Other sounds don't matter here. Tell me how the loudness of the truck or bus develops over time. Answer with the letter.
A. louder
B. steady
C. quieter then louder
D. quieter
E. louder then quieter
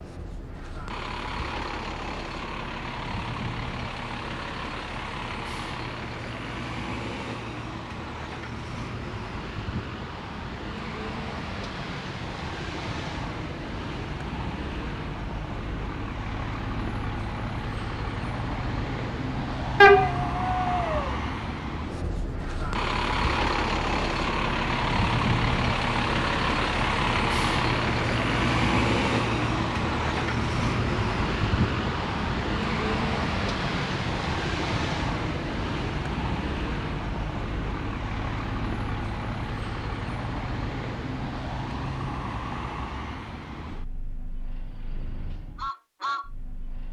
E.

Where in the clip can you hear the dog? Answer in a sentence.
You can hear the dog from 19.8 to 21.1 s.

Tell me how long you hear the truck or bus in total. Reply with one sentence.
You can hear the truck or bus for 47 seconds altogether.